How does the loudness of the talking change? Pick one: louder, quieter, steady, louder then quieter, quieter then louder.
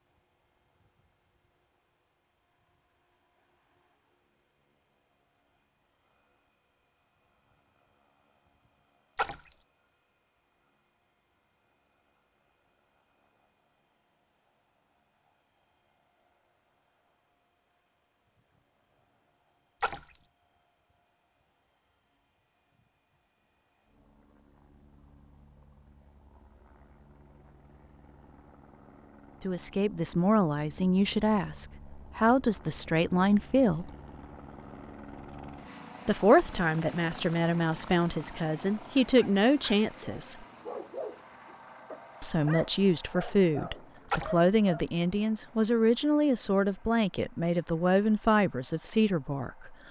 steady.